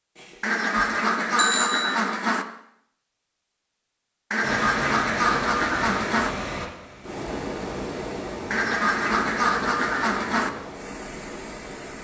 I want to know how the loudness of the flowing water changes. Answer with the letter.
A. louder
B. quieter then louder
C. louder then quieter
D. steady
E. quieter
E.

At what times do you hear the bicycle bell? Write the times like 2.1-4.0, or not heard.
0.1-1.9.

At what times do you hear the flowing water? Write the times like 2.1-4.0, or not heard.
4.4-11.9.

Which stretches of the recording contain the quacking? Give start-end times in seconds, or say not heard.
0.4-2.5, 4.3-6.3, 8.5-10.5.